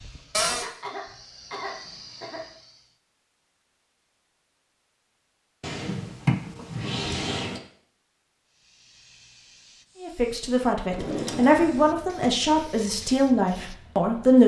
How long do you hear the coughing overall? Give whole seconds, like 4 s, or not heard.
2 s.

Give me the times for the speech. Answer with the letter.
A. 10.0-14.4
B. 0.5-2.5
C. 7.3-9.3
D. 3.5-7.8
A.